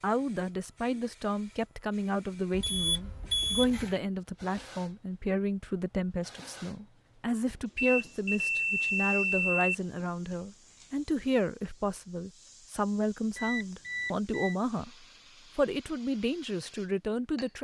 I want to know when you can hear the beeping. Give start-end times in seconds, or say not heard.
2.5-4.0, 7.8-9.7, 13.3-14.6.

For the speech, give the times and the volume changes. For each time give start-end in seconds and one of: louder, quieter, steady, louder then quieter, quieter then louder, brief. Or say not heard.
0.0-17.6 steady.